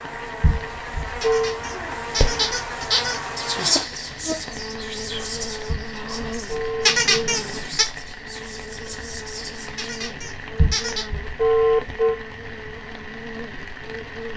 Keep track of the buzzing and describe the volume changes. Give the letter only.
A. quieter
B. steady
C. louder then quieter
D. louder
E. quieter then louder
A.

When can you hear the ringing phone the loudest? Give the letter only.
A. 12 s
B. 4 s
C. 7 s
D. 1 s
A.